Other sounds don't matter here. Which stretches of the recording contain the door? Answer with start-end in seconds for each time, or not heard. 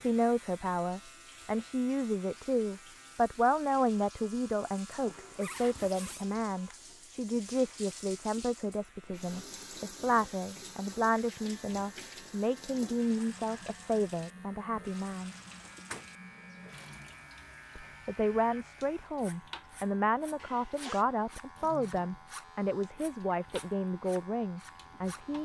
15.5-16.6.